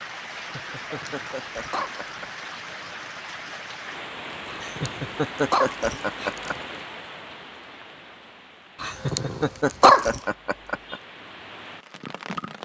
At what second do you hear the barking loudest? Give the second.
10 s.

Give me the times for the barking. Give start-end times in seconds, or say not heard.
0.8-2.1, 4.5-6.6, 8.8-10.1.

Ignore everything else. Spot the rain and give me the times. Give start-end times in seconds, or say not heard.
0.0-12.6.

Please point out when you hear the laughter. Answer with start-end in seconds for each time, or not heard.
0.3-2.5, 4.6-6.8, 8.8-11.0.